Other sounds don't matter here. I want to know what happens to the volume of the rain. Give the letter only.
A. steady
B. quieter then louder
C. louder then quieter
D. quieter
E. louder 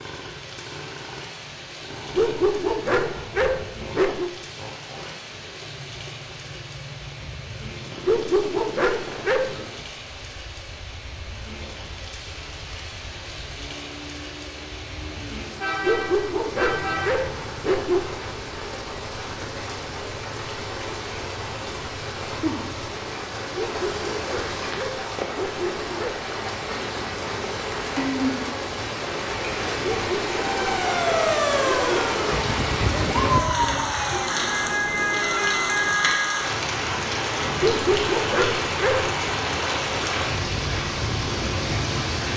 E.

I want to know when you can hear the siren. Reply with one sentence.
The siren can be heard from 30.5 to 36.5 s.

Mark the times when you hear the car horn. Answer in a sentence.
The car horn can be heard from 15.6 to 17.2 s.